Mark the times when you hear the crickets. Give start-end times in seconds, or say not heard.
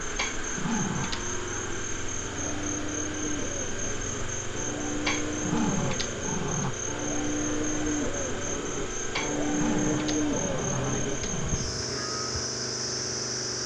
0.0-13.6.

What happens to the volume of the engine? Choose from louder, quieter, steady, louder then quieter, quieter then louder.
steady.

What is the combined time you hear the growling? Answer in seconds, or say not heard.
5 s.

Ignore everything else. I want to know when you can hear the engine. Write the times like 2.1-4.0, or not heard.
0.0-13.6.